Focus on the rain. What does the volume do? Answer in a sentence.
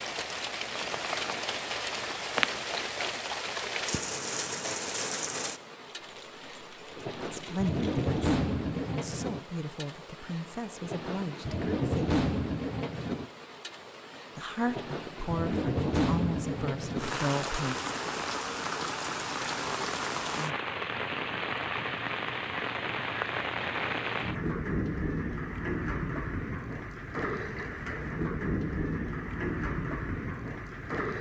The volume of the rain stays about the same.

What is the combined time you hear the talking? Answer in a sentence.
The talking can be heard for 8 seconds in total.